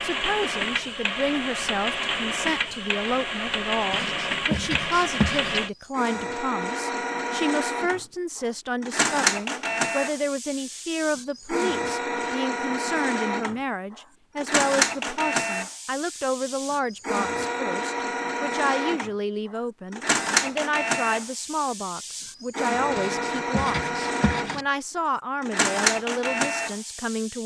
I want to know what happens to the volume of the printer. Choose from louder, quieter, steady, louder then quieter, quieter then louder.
steady.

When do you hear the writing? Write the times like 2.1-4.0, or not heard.
3.9-5.6, 22.9-24.6.